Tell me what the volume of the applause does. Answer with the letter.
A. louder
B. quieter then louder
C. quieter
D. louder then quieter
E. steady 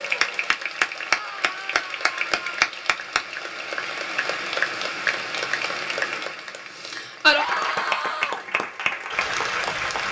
E.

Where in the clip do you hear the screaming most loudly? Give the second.
8 s.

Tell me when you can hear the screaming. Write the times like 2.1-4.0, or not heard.
1.1-2.6, 7.3-8.4.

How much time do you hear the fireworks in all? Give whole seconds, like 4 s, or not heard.
not heard.